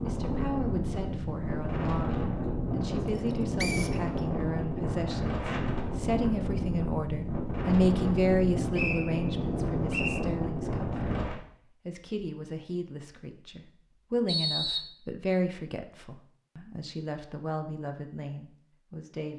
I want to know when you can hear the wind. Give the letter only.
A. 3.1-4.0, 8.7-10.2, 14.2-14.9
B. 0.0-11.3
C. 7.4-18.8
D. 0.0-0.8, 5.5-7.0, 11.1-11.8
B.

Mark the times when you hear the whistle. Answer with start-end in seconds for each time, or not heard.
3.1-4.0, 8.7-10.2, 14.2-14.9.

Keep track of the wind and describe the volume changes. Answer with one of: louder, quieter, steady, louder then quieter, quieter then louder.
steady.